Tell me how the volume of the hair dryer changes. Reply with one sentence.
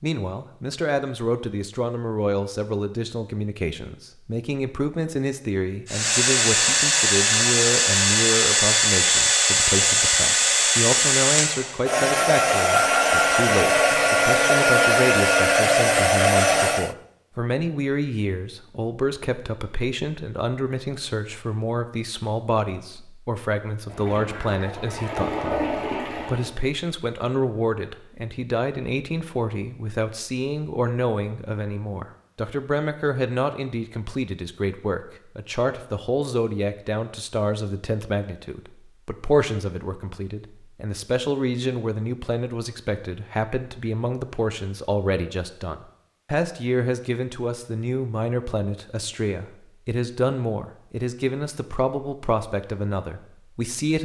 The volume of the hair dryer stays about the same.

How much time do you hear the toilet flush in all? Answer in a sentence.
You can hear the toilet flush for 3 seconds altogether.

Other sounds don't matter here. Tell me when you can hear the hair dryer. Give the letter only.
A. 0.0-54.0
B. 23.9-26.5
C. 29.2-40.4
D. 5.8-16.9
D.